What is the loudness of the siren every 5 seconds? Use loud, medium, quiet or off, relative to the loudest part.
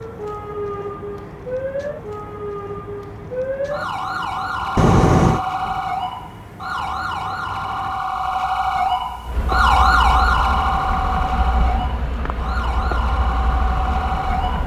medium, loud, loud.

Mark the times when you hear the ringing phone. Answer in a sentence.
You can hear the ringing phone from 4.8 to 5.5 s.